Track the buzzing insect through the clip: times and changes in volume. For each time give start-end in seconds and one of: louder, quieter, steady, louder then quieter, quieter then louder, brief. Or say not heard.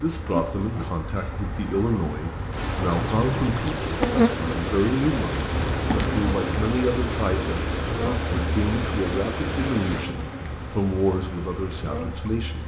0.0-12.6 louder then quieter.